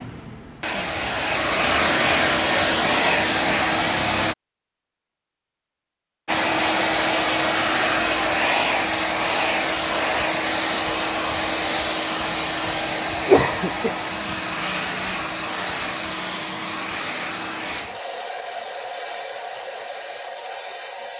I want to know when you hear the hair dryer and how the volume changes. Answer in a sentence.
You can hear the hair dryer from 0.0 to 4.3 s, getting louder; and from 6.2 to 21.1 s, getting quieter.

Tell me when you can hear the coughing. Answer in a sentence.
The coughing can be heard from 13.0 to 13.9 s.